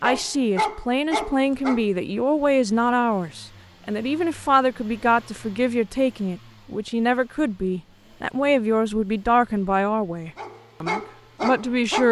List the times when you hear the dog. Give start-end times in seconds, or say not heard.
0.0-1.9, 10.3-12.0.